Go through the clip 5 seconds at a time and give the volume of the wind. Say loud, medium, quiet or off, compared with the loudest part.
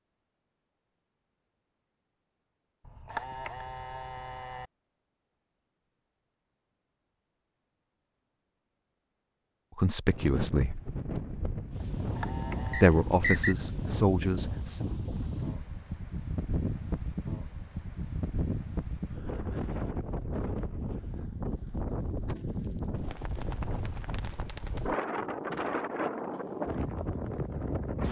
off, off, loud, loud, loud, loud.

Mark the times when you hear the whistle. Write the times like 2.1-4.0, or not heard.
12.7-13.6.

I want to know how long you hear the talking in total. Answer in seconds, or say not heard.
3 s.